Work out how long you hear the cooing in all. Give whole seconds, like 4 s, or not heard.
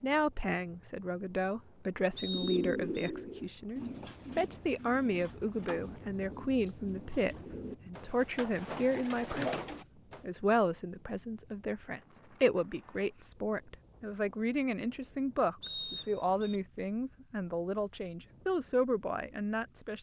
8 s.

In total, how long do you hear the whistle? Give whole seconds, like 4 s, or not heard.
2 s.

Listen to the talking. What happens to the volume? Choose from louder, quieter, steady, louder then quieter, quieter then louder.
steady.